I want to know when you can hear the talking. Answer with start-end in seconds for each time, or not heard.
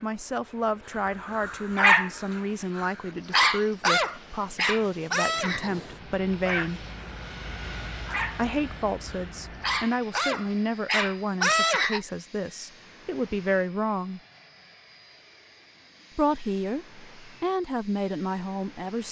0.0-6.8, 8.3-14.2, 16.1-19.0.